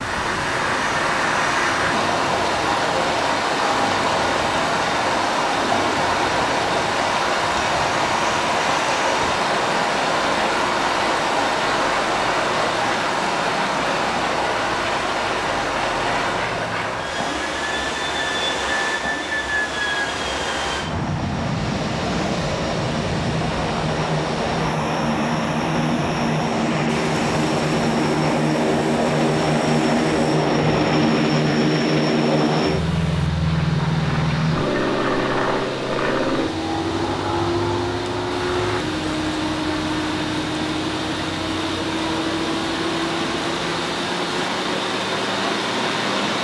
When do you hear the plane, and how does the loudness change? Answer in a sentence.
You can hear the plane from 0.0 to 46.4 s, getting louder then quieter.